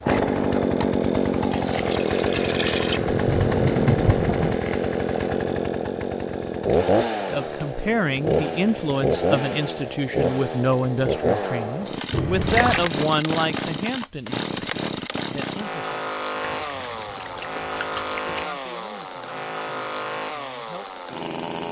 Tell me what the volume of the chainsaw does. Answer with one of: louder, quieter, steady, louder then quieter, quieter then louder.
quieter.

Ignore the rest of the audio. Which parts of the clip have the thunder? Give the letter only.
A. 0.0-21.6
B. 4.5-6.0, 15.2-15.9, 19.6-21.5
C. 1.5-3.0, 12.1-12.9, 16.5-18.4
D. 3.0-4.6
D.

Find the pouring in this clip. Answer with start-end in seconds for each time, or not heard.
1.5-3.0, 12.1-12.9, 16.5-18.4.